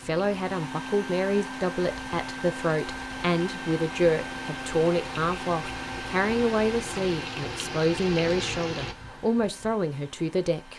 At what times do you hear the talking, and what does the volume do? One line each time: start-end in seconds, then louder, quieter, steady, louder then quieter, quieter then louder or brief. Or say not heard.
0.0-10.7 steady.